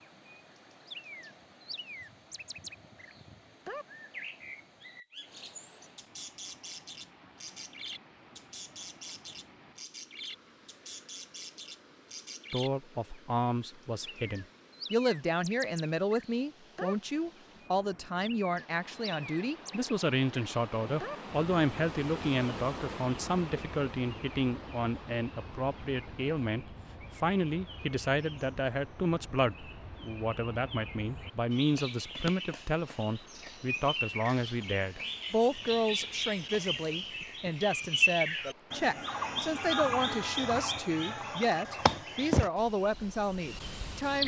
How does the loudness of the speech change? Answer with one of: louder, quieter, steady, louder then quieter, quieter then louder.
steady.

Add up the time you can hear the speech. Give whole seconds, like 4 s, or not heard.
32 s.